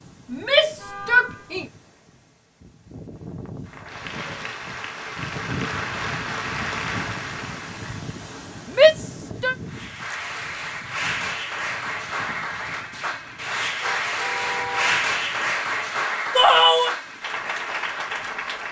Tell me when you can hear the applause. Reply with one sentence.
You can hear the applause from 3.6 to 8.1 s and from 9.7 to 18.6 s.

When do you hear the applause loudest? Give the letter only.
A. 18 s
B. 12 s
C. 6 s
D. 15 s
D.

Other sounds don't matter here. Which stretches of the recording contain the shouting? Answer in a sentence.
You can hear the shouting from 0.3 to 1.6 s, from 8.7 to 9.6 s and from 16.4 to 16.9 s.